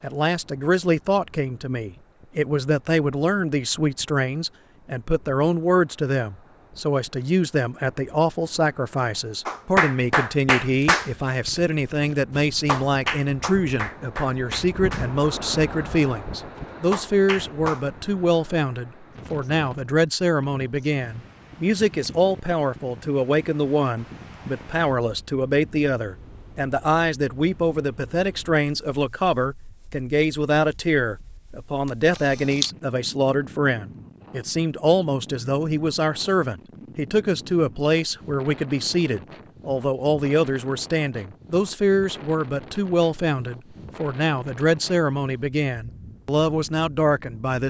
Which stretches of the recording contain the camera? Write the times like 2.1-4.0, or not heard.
31.9-32.7.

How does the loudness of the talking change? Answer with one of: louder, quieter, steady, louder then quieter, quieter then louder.
steady.